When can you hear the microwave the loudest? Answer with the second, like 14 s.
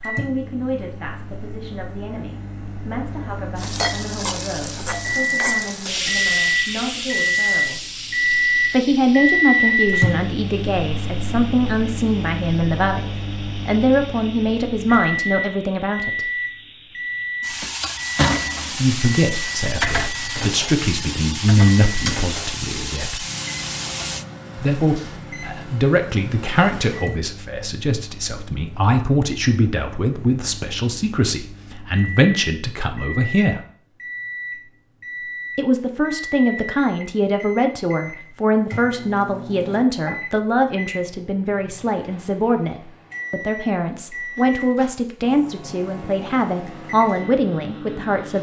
10 s.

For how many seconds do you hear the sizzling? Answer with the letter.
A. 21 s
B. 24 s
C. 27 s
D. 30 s
A.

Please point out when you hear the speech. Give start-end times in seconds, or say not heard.
0.0-7.8, 8.6-16.2, 18.7-23.2, 24.6-33.6, 35.5-48.3.